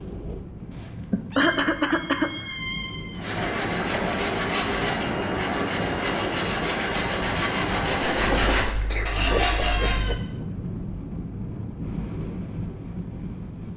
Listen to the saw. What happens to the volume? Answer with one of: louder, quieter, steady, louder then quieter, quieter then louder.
steady.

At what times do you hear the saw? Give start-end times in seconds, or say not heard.
3.1-10.0.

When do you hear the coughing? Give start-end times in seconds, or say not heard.
1.1-2.5, 8.2-10.2.